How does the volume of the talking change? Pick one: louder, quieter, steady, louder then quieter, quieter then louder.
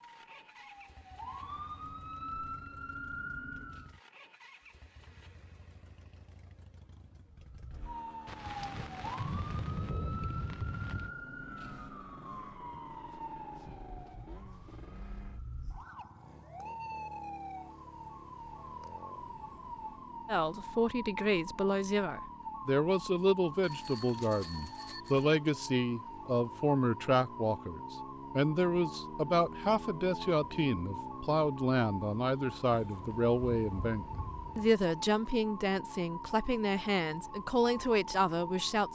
steady.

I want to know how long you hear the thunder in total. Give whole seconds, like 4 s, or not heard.
5 s.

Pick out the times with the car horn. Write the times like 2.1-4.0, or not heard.
not heard.